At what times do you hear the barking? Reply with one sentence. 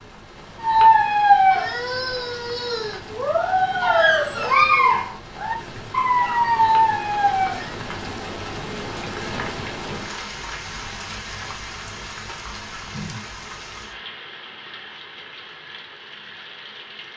The barking can be heard from 0.6 to 7.8 s.